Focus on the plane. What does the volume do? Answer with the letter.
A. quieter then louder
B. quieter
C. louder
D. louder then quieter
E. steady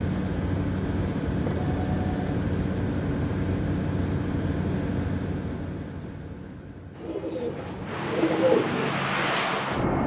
A.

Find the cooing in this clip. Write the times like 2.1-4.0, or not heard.
6.9-10.0.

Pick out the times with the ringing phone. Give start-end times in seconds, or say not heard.
1.2-2.3.